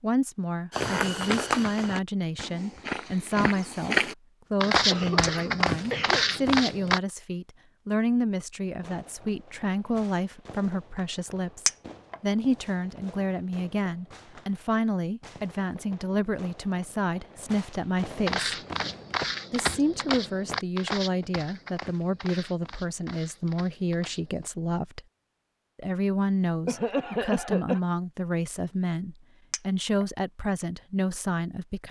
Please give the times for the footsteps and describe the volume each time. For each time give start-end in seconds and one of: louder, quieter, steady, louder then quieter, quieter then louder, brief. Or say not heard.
0.7-7.0 quieter then louder
18.2-24.5 quieter.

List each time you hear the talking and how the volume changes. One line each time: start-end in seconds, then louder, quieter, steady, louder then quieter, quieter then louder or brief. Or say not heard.
0.0-18.6 steady
19.5-25.0 steady
25.8-31.8 steady.